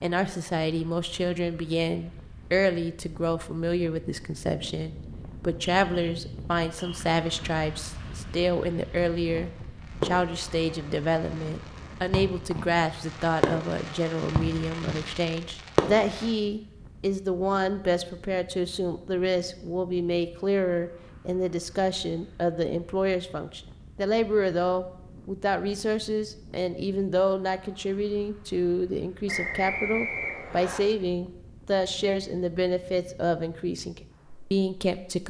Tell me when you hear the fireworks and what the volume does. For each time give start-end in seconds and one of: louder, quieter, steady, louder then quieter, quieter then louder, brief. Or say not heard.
9.2-16.3 quieter then louder.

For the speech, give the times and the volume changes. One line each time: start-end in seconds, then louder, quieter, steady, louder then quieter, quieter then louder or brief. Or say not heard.
0.0-35.2 steady.